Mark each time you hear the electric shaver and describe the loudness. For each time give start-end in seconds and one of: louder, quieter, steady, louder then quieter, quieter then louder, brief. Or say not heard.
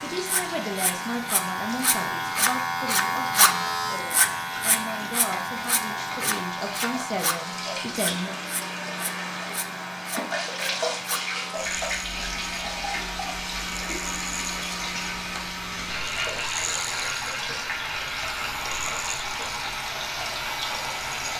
0.0-21.3 quieter.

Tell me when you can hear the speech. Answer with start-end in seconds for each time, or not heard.
0.0-8.3.